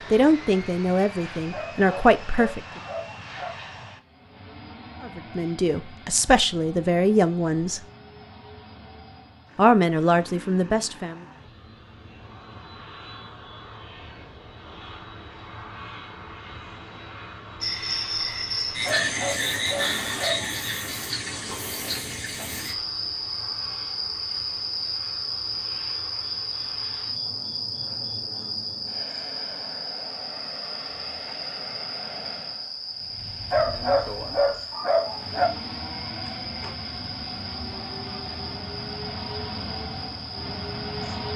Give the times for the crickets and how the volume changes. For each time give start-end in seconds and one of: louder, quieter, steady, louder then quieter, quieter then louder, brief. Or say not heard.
17.6-41.3 quieter.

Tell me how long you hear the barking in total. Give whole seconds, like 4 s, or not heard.
6 s.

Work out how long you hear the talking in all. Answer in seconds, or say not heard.
7 s.